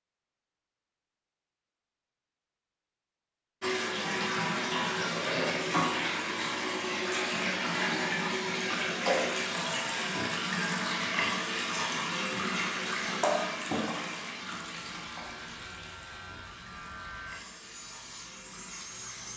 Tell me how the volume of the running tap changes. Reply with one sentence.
The loudness of the running tap goes down.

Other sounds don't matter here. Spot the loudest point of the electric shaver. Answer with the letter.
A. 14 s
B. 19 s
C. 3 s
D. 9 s
B.